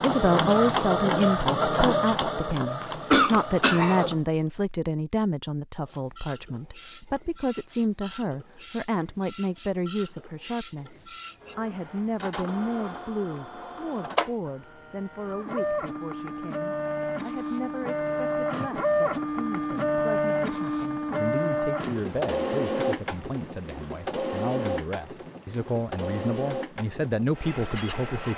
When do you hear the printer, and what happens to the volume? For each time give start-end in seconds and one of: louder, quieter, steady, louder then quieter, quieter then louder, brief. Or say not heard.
0.0-4.2 quieter
5.8-28.3 louder then quieter.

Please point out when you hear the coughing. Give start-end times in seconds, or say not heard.
2.8-4.0.